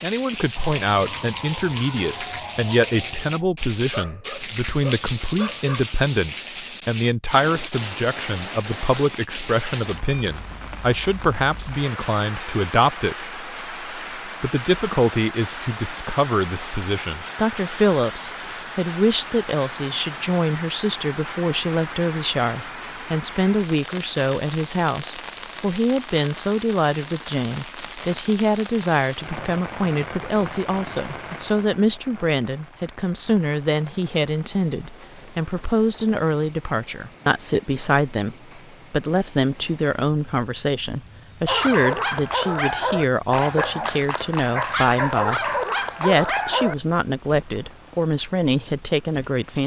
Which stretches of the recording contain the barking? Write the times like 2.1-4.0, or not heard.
0.6-5.9, 41.5-46.8.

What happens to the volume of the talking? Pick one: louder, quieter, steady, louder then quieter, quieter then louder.
steady.